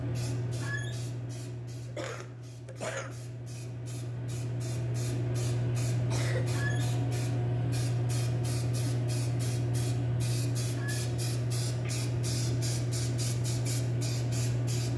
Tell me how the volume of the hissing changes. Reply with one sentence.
The loudness of the hissing goes up.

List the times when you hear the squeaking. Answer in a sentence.
You can hear the squeaking from 0.6 to 1.0 s, from 6.5 to 6.9 s and from 10.8 to 11.2 s.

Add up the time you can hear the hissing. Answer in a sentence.
You can hear the hissing for 15 seconds altogether.